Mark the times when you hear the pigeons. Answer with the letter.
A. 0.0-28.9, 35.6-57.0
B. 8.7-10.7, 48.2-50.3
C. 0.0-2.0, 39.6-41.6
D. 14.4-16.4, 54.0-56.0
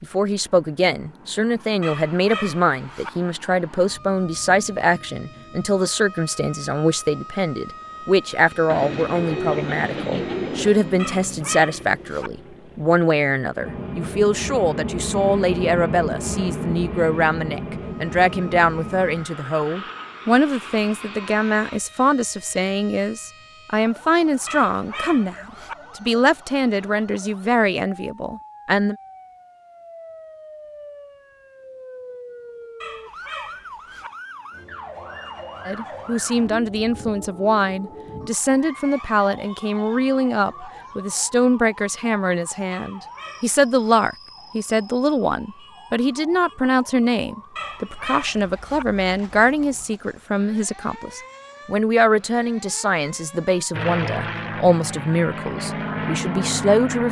B.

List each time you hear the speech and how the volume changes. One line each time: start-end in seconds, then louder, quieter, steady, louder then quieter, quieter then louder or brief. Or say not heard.
0.0-28.9 steady
35.6-57.0 steady.